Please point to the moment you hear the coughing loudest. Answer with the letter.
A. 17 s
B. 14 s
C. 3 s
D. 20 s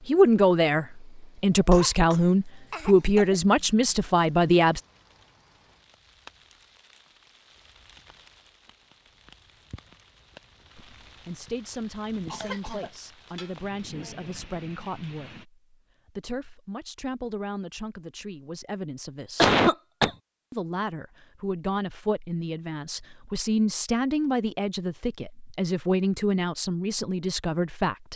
D.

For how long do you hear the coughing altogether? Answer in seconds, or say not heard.
3 s.